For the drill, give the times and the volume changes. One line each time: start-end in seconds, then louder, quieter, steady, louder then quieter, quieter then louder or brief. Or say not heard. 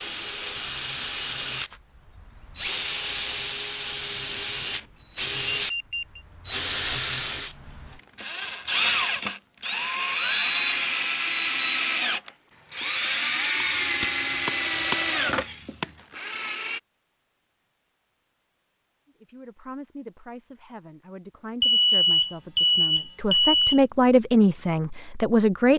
0.0-16.8 steady.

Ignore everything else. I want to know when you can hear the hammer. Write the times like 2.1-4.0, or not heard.
13.6-15.9.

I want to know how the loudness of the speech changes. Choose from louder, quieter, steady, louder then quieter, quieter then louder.
louder.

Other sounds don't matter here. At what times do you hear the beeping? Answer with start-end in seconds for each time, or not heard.
5.7-6.2, 10.1-11.8, 21.6-23.8.